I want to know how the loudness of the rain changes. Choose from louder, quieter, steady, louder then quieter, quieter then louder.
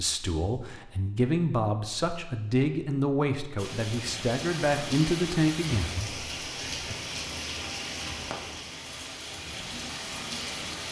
steady.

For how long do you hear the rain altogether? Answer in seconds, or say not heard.
7 s.